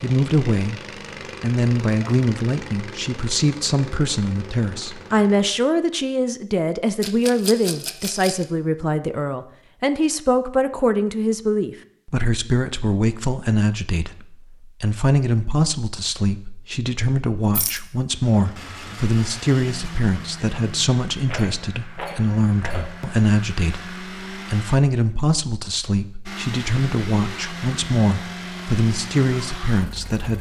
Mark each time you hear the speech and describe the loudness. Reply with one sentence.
The speech can be heard briefly from 0.0 to 0.8 s; and from 1.4 to 30.3 s, at a steady volume.